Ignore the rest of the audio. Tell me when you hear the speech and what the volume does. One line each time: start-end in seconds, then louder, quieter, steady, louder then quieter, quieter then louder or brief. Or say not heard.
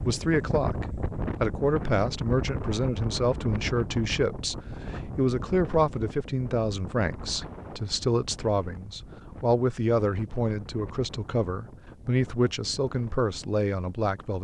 0.0-14.3 steady.